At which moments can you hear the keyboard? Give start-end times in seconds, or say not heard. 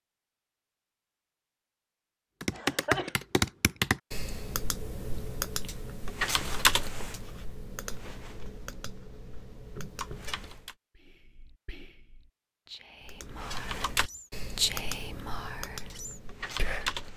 2.4-10.8, 13.0-17.1.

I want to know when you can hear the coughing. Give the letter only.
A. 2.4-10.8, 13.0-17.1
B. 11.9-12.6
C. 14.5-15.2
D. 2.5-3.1
D.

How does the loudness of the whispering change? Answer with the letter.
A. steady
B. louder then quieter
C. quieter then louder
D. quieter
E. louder
B.